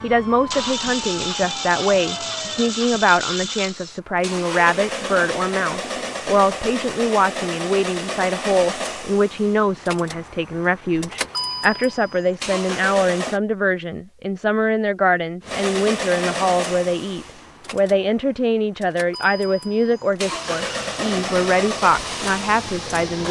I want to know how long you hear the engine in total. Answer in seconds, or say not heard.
21 s.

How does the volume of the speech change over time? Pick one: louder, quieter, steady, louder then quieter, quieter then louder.
steady.